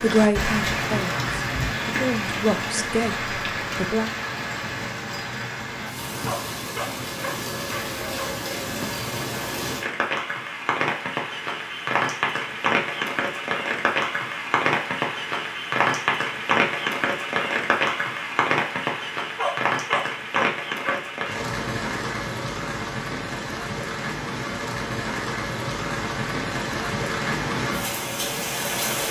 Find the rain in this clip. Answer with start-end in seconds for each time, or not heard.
0.0-29.0.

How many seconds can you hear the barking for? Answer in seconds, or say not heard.
4 s.